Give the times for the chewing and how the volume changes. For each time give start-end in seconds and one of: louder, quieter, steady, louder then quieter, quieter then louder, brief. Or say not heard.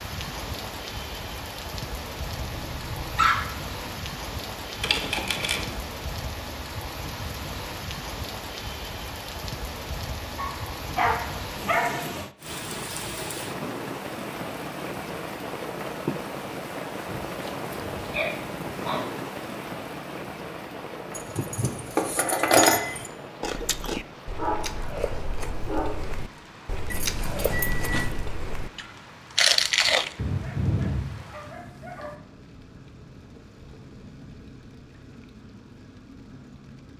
23.4-30.1 louder.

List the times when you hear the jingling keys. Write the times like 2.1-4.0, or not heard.
4.8-5.8, 21.1-23.1, 26.9-28.1.